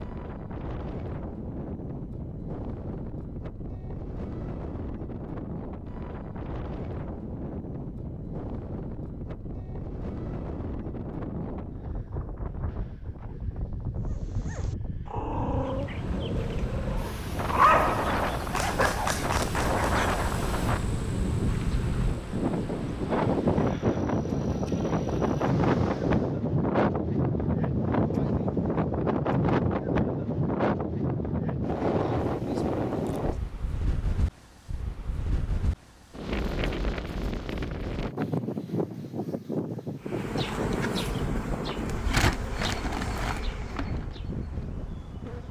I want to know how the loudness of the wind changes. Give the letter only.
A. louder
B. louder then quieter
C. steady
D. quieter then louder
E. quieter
B.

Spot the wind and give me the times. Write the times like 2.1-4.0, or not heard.
0.0-45.4.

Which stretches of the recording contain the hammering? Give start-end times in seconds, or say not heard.
not heard.